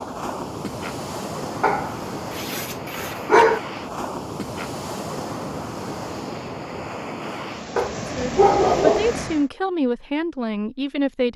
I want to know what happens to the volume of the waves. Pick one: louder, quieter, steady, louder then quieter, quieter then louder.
steady.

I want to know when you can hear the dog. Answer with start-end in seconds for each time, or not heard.
1.6-3.6, 7.8-9.2.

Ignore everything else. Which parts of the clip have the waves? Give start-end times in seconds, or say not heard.
0.0-9.5.